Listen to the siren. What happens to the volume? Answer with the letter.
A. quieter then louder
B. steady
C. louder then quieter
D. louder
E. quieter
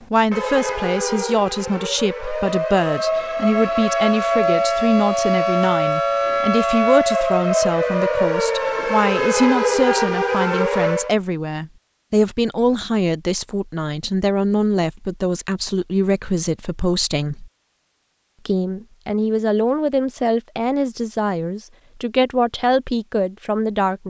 D.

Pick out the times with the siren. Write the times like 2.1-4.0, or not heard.
0.0-11.2.